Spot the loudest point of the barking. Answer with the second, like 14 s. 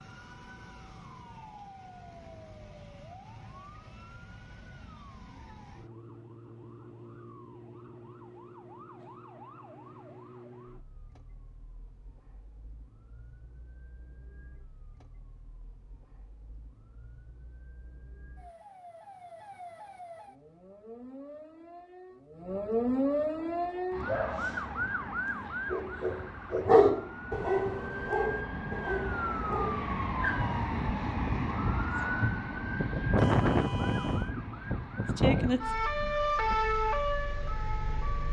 27 s.